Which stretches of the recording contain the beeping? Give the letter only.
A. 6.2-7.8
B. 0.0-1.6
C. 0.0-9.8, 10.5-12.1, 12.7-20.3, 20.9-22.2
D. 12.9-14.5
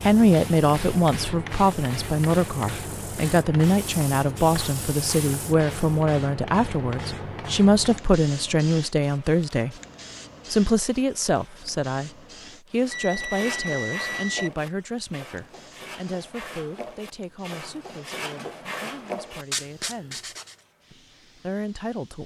D.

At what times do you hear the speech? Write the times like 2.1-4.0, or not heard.
0.0-9.8, 10.5-12.1, 12.7-20.3, 20.9-22.2.